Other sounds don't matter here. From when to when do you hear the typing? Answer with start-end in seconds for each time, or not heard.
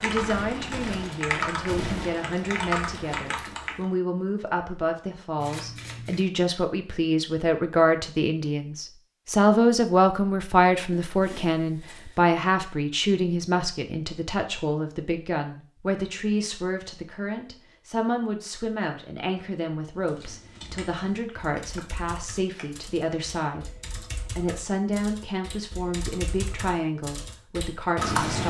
0.0-3.9, 19.9-28.4.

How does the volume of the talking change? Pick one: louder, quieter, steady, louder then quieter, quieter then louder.
louder then quieter.